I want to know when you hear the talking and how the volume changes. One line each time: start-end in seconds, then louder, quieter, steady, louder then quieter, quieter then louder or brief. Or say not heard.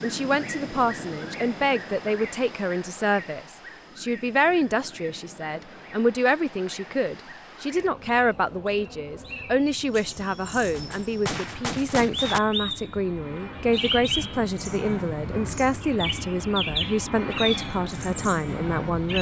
0.0-19.1 steady.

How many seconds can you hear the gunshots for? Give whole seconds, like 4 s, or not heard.
2 s.